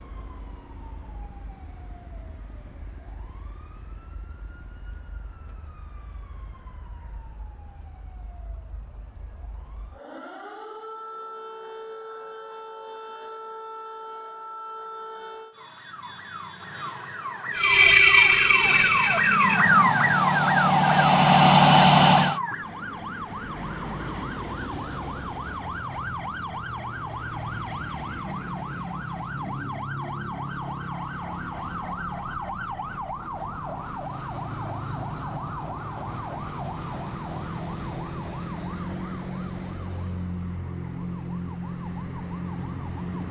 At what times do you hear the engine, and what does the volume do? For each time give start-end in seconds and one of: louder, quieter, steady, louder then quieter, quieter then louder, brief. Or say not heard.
17.6-22.4 quieter then louder.